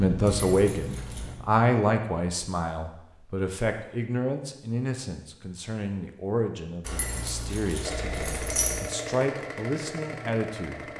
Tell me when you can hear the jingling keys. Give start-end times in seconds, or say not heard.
0.2-1.4, 6.8-8.8.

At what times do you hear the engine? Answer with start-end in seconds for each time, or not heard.
0.0-1.6, 7.8-10.9.